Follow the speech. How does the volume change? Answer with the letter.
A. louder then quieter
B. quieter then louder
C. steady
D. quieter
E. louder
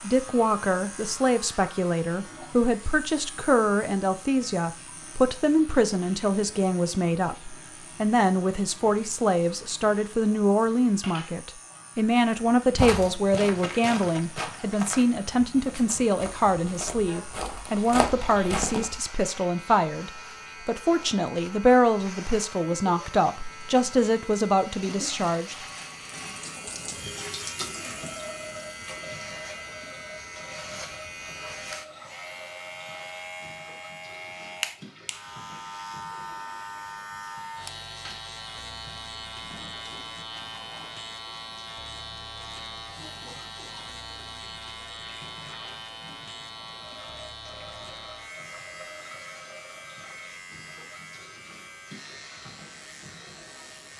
C.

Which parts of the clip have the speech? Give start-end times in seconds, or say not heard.
0.0-25.6.